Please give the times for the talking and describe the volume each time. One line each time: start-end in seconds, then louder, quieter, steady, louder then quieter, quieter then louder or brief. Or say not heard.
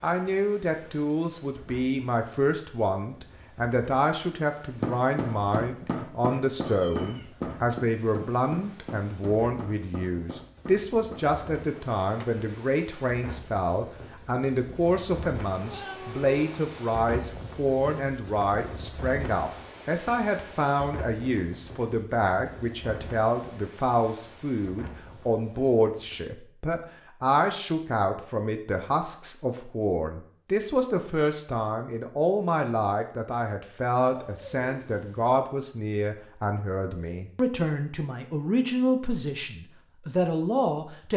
0.0-41.1 steady.